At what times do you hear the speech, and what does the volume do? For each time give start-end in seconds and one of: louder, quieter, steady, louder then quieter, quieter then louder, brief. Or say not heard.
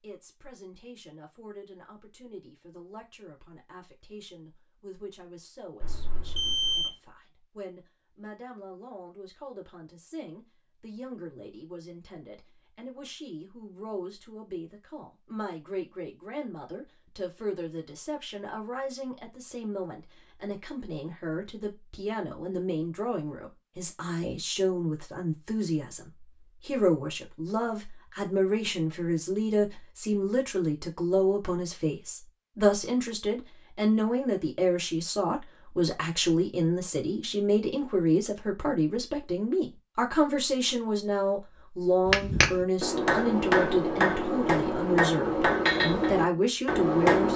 0.0-47.3 louder.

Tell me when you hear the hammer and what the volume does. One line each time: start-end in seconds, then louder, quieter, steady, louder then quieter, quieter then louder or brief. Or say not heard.
42.0-47.3 steady.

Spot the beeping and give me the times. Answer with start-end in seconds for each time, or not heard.
5.8-6.9.